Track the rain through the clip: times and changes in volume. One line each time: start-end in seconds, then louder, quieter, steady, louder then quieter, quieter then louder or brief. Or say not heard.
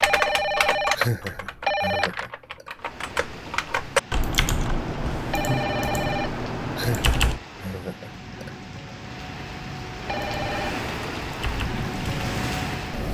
2.8-13.0 louder.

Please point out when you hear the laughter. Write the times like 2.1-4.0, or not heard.
0.9-2.7, 6.8-8.5.